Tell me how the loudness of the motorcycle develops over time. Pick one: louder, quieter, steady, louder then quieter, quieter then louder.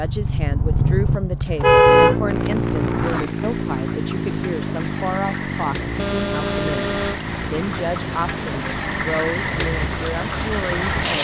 quieter.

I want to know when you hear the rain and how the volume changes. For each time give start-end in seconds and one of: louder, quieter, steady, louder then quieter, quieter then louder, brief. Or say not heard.
2.2-11.1 louder.